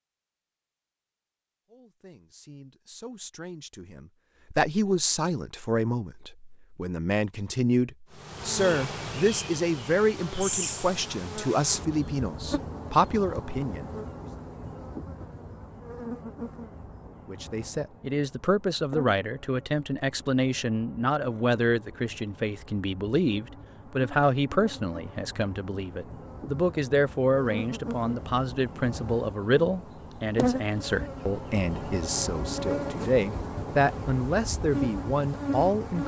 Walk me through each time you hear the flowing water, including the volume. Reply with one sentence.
The flowing water can't be heard in this clip.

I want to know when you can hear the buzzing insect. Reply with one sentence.
The buzzing insect can be heard from 8.1 to 36.0 s.